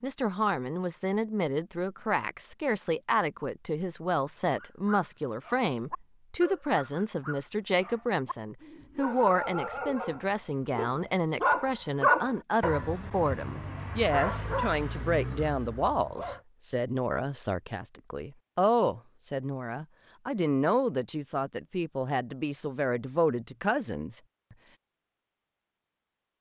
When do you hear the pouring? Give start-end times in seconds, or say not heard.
not heard.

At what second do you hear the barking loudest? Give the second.
12 s.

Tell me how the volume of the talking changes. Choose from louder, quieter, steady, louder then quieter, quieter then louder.
steady.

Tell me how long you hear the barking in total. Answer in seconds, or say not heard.
12 s.